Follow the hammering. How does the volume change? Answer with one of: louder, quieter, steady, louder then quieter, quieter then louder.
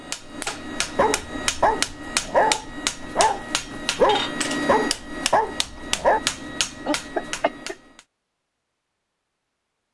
steady.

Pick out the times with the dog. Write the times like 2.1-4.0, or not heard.
0.5-6.2.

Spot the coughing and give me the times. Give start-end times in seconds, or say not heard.
6.8-7.8.